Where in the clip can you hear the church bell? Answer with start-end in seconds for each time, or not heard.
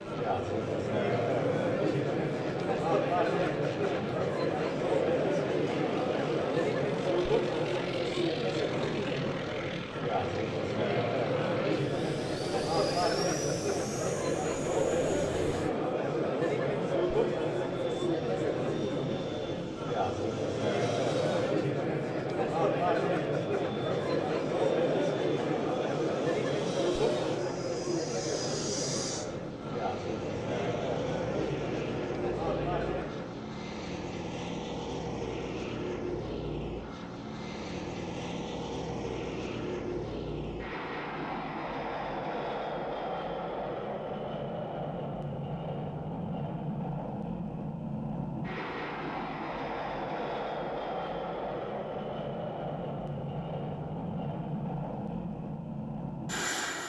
not heard.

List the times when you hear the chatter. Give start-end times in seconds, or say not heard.
0.0-33.5.